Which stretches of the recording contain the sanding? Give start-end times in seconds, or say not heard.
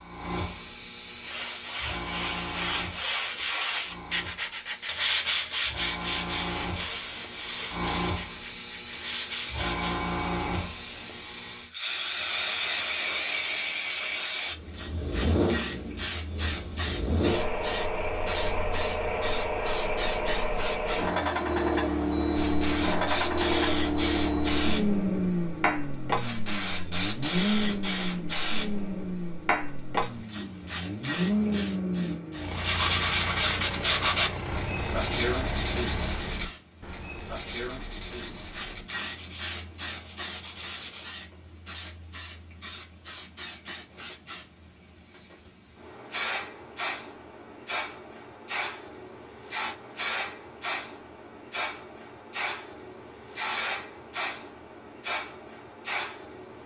1.1-9.9, 32.5-41.1.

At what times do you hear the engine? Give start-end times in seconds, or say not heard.
14.5-36.5.